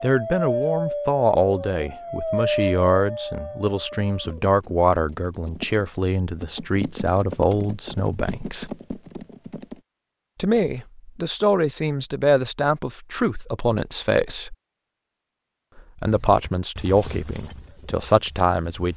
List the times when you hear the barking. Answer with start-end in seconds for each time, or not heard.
0.0-4.5.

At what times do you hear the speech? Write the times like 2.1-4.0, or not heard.
0.0-8.7, 10.3-14.6, 15.8-18.9.